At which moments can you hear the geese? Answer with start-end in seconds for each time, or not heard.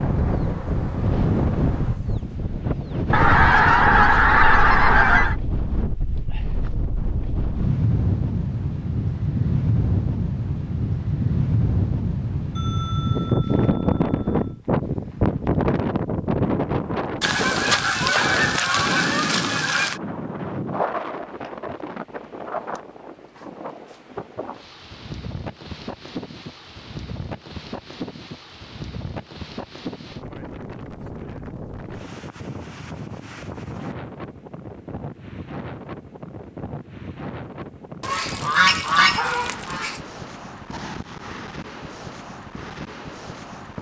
3.1-5.3, 17.2-20.0, 38.0-40.0.